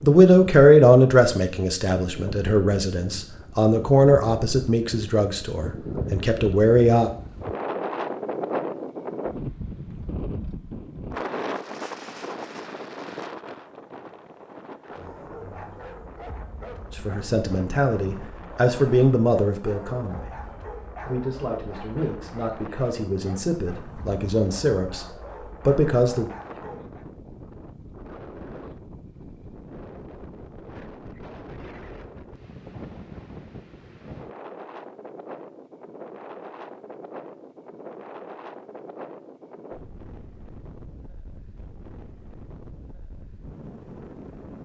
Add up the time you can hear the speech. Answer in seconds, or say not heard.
16 s.